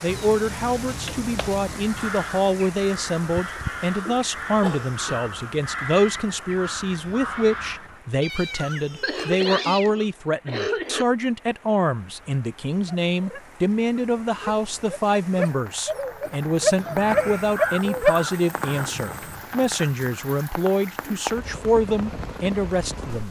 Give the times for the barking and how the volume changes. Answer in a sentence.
You can hear the barking from 12.8 to 18.1 s, getting louder.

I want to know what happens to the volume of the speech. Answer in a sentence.
The loudness of the speech stays about the same.